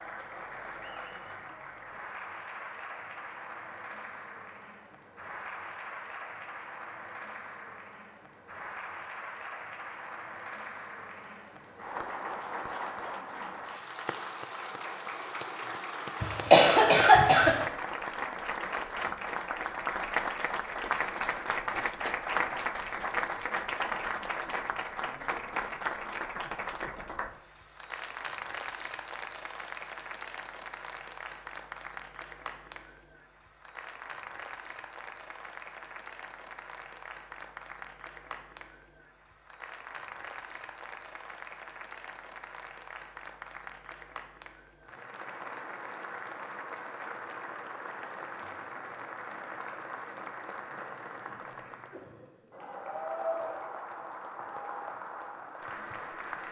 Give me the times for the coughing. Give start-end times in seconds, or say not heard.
16.2-17.6.